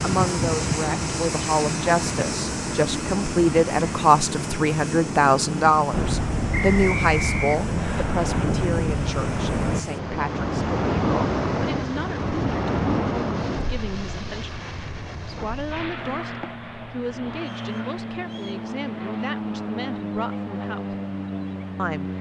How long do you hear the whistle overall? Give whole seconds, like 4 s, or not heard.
3 s.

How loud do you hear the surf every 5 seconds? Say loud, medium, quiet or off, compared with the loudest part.
off, loud, loud, quiet, quiet.